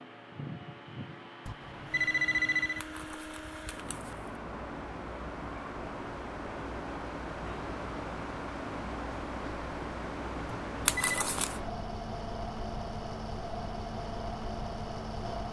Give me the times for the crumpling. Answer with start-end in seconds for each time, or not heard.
2.8-4.3, 10.8-11.6.